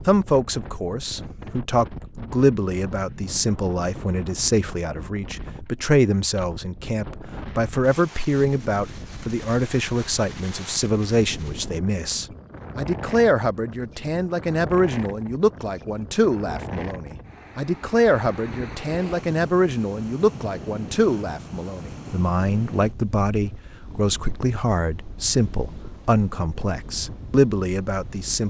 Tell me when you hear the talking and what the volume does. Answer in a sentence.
The talking can be heard from 0.1 to 28.4 s, at a steady volume.